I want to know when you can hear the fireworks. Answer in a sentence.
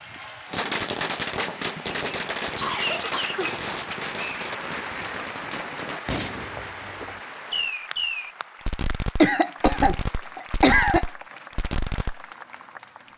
You can hear the fireworks from 0.5 to 12.2 s.